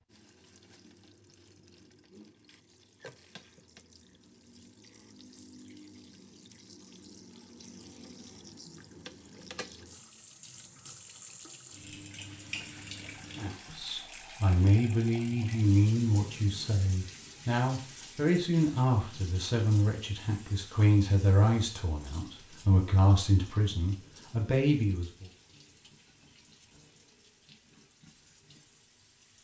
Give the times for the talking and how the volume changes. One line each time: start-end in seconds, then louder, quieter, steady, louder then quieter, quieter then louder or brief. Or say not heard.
13.3-25.2 steady.